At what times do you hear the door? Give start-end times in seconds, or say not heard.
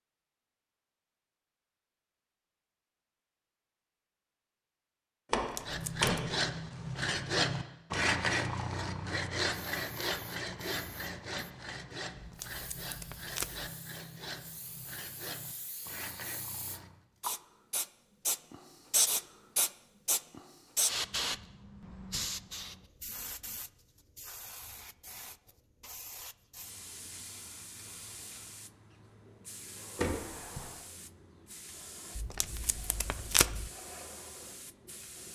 5.3-6.3, 29.9-30.7.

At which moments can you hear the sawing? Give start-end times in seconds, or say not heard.
5.6-17.0.